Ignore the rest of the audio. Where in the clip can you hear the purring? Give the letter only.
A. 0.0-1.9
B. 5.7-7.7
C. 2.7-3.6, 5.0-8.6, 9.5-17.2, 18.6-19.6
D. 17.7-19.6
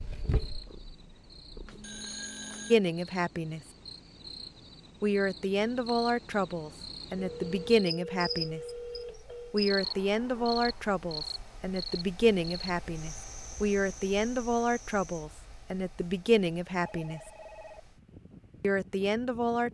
A.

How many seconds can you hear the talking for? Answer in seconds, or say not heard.
13 s.